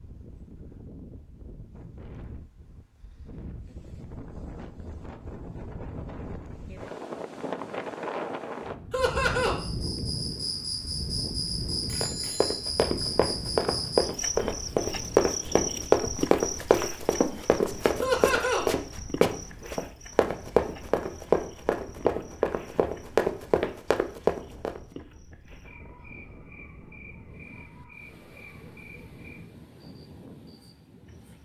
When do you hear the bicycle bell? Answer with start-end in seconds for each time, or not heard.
11.8-12.7.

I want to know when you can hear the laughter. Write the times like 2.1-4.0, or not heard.
8.9-9.6, 18.0-18.6.